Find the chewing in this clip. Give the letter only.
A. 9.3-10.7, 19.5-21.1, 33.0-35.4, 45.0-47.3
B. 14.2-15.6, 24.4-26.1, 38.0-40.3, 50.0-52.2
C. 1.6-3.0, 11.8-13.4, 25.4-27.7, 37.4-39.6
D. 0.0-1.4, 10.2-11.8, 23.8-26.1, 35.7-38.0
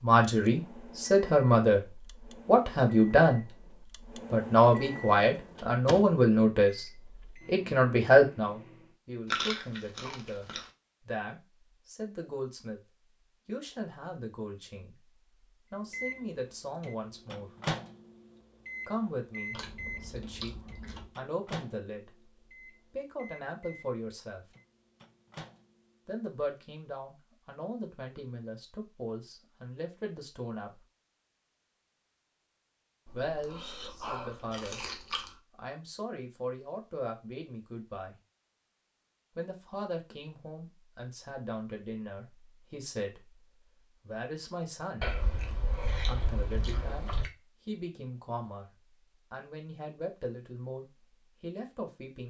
A.